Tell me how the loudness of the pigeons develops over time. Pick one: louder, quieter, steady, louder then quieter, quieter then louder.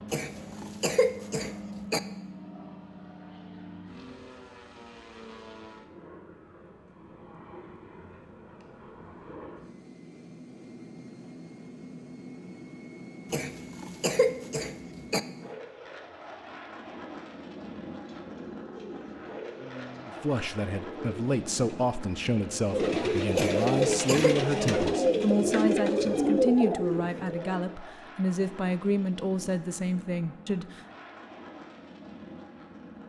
louder.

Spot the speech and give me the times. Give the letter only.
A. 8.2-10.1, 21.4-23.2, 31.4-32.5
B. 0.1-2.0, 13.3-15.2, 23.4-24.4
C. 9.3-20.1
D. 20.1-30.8
D.